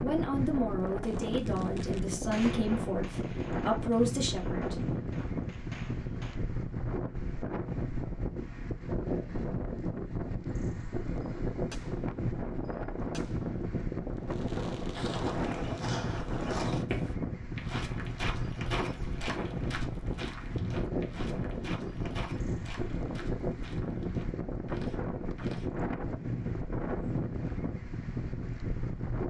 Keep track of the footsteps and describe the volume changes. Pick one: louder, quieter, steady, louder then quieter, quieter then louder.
quieter.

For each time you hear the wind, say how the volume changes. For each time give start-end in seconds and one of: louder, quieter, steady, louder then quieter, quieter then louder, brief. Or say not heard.
0.0-29.2 steady.